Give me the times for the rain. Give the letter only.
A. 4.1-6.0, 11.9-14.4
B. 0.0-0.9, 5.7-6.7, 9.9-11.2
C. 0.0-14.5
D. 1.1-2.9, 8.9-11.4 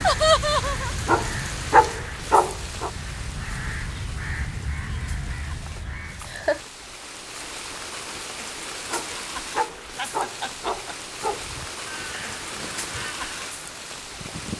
C.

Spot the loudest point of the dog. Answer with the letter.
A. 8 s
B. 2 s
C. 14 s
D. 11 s
B.